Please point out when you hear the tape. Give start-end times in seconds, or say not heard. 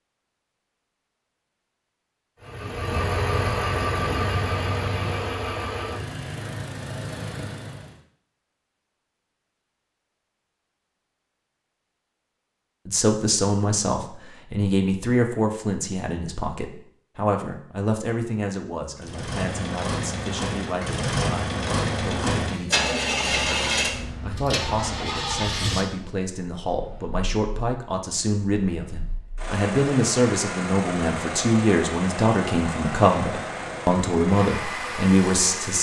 not heard.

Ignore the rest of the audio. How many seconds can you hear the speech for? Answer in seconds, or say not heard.
23 s.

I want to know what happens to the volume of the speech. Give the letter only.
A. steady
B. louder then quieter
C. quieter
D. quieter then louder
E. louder
D.